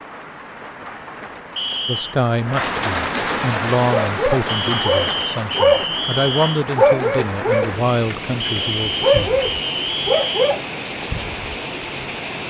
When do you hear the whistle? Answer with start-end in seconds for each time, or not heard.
1.6-2.1, 4.5-6.7, 8.4-10.6.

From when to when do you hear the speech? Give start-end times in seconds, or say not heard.
1.9-9.3.